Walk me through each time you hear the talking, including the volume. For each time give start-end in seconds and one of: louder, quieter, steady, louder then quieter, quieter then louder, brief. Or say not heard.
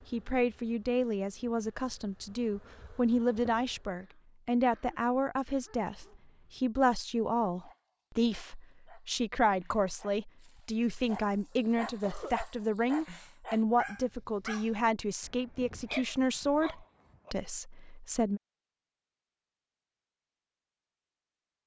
0.1-18.4 steady.